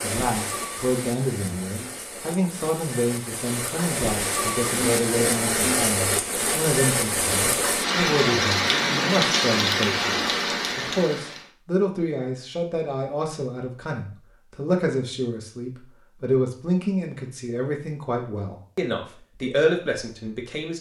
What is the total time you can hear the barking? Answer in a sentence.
The barking can't be heard in this clip.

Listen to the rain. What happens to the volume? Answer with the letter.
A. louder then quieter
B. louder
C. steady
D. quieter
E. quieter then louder
B.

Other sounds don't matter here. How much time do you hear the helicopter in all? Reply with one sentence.
The helicopter can't be heard in this clip.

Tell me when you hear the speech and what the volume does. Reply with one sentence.
You can hear the speech from 0.0 to 20.7 s, at a steady volume.